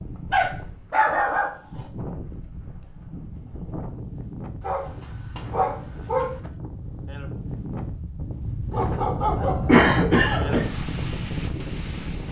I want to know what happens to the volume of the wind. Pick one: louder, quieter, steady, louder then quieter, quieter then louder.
louder.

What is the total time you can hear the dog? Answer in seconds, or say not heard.
5 s.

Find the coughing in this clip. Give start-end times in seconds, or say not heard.
9.7-10.7.